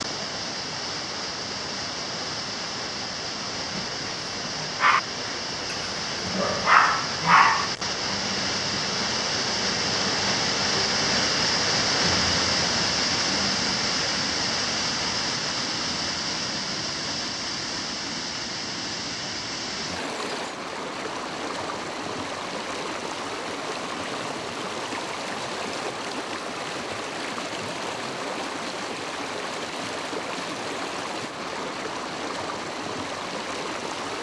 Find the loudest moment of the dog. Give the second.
7 s.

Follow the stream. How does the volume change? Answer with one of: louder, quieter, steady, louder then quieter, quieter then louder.
louder then quieter.